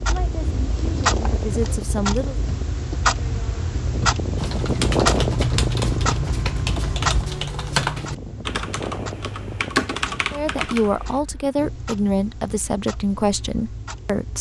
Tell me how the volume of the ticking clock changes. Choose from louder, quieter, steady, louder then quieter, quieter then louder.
quieter.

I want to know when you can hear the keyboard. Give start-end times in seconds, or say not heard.
4.3-11.2.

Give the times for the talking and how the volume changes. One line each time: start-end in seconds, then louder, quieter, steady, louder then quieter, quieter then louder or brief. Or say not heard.
0.1-2.4 brief
10.3-14.3 steady.